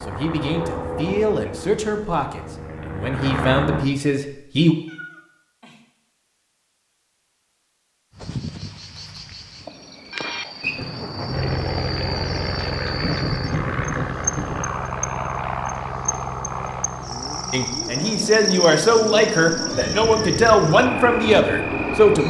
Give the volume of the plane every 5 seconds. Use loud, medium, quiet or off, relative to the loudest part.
loud, off, loud, loud, loud.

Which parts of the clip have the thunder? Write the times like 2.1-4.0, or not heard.
10.6-14.7.